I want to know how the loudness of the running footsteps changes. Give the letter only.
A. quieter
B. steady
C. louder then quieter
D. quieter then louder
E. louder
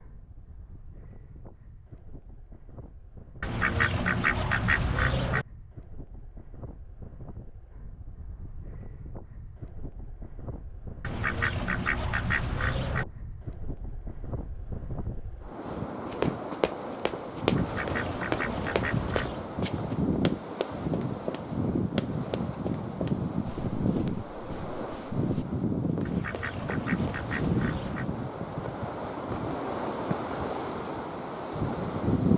A.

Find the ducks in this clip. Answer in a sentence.
You can hear the ducks from 3.4 to 5.5 s, from 11.0 to 13.1 s, from 17.6 to 19.5 s and from 26.1 to 28.1 s.